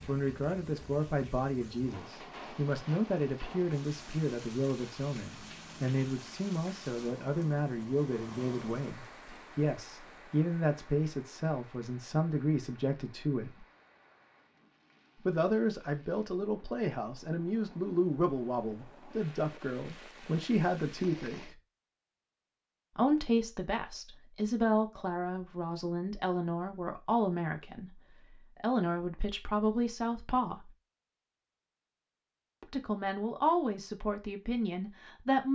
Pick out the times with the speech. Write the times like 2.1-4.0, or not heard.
0.1-13.7, 15.2-21.6, 22.9-30.7, 32.6-35.5.